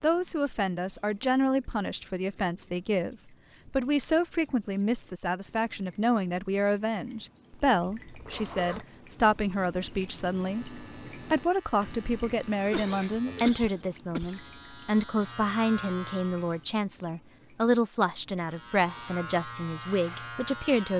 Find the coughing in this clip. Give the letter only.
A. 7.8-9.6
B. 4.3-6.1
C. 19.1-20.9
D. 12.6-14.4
D.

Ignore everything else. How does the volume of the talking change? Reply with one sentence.
The loudness of the talking stays about the same.